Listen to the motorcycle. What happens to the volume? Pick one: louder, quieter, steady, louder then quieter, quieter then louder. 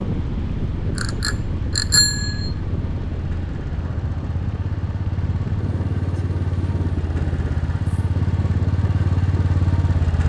louder.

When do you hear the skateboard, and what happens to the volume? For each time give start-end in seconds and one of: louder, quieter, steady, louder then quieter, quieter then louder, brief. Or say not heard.
not heard.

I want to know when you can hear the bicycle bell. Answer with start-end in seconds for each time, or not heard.
0.9-2.5.